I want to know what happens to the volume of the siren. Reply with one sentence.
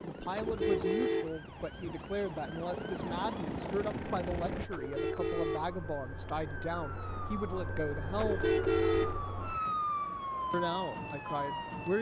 The volume of the siren goes up.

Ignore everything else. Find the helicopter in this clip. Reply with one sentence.
You can hear the helicopter from 0.0 to 4.7 s.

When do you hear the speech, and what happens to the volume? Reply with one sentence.
The speech can be heard from 0.0 to 8.5 s, at a steady volume; and briefly from 10.5 to 11.9 s.